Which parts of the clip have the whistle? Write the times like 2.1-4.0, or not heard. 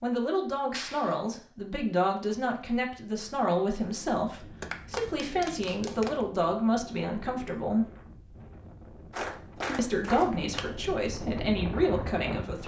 not heard.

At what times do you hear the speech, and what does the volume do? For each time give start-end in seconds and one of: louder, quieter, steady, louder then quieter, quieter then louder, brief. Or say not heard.
0.0-7.8 steady
9.8-12.6 brief.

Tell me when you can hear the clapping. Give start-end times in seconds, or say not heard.
0.7-1.2, 4.6-6.2, 9.1-10.8.